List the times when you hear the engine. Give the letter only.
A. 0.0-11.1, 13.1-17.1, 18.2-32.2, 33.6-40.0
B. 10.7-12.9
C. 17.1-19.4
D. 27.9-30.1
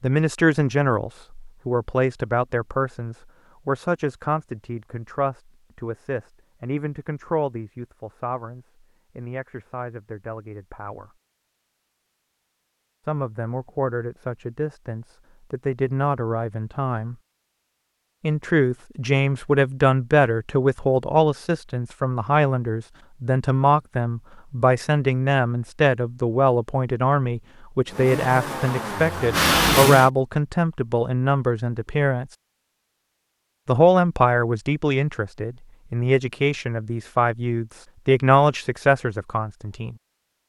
D.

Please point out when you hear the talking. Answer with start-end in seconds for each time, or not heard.
0.0-11.1, 13.1-17.1, 18.2-32.2, 33.6-40.0.